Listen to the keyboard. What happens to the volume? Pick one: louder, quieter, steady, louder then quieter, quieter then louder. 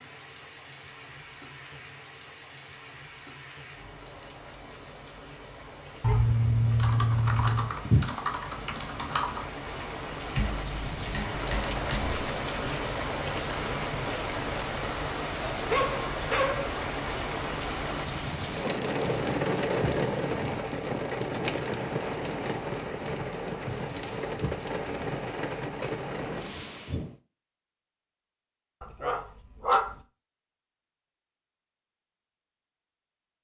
quieter.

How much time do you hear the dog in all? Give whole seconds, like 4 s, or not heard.
4 s.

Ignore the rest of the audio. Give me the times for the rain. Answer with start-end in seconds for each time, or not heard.
0.0-27.1.